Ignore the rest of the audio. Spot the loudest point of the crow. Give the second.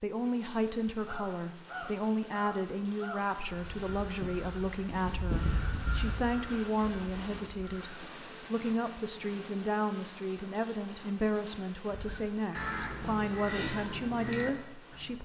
14 s.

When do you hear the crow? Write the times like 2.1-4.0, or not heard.
1.1-8.0, 11.9-15.1.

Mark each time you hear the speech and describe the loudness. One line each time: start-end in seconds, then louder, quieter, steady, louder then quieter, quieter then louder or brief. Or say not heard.
0.0-15.1 steady.